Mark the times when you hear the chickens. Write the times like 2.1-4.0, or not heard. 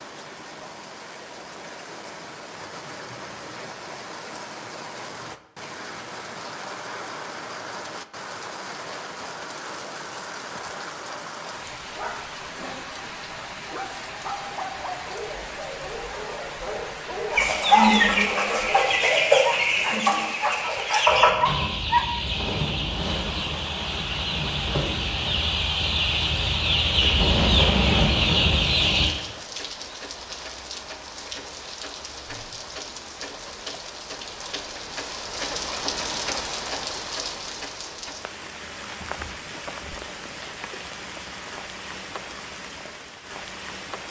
17.3-29.1.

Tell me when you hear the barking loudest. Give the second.
22 s.